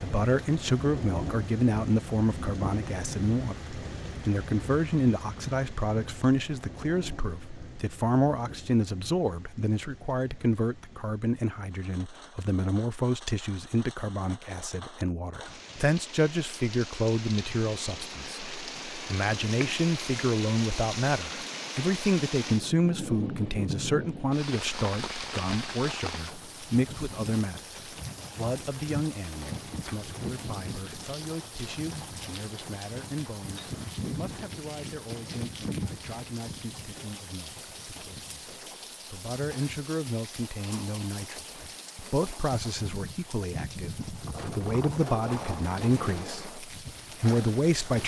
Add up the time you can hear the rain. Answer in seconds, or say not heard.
48 s.